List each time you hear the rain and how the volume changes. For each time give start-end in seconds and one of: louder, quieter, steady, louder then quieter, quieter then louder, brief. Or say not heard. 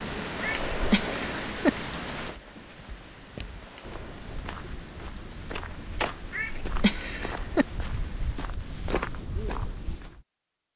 0.0-8.6 quieter.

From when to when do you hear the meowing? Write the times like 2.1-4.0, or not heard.
0.4-1.7, 6.3-7.7.